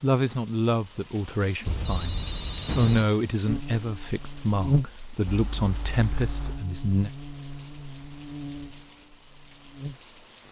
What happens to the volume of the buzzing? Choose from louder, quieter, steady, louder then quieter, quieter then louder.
quieter.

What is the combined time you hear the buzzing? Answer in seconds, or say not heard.
7 s.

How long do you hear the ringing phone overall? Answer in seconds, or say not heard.
3 s.